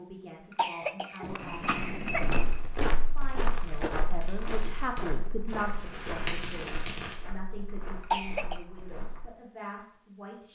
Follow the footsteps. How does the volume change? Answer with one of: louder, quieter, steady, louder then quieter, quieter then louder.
quieter.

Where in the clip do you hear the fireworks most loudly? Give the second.
6 s.